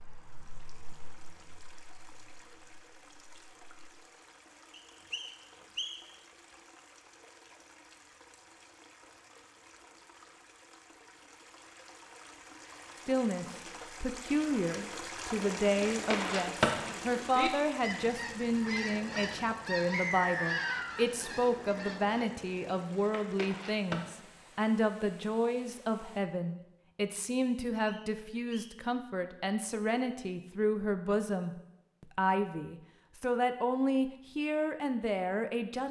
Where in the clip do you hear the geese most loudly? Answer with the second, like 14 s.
17 s.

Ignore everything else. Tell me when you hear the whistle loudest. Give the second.
20 s.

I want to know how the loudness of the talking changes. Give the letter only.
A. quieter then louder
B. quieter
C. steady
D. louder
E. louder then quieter
C.